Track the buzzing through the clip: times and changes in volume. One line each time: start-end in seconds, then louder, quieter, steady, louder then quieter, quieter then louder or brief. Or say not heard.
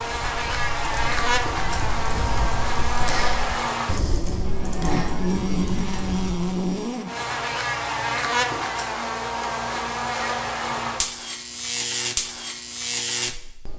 0.0-13.7 steady.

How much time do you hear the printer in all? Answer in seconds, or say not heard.
not heard.